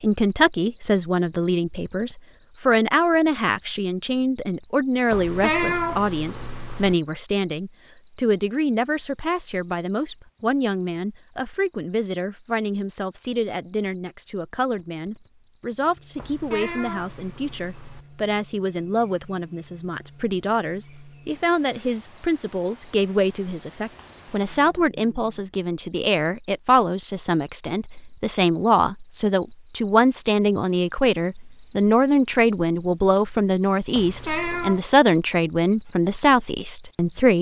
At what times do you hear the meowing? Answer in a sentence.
You can hear the meowing from 5.1 to 7.0 s, from 16.1 to 18.1 s and from 33.9 to 34.8 s.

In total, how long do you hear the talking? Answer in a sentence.
You can hear the talking for 37 seconds altogether.